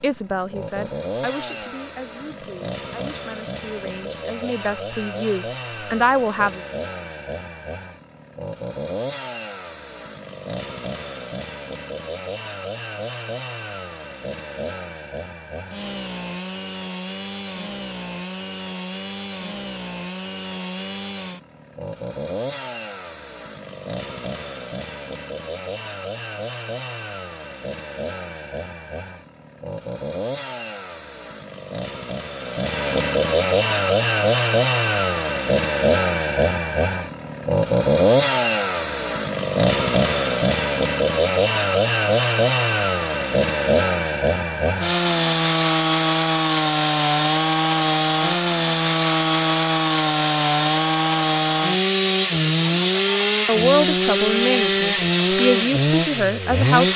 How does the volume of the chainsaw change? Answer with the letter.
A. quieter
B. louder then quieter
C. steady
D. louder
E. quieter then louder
D.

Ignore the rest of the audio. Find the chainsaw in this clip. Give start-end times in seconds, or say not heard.
0.0-56.9.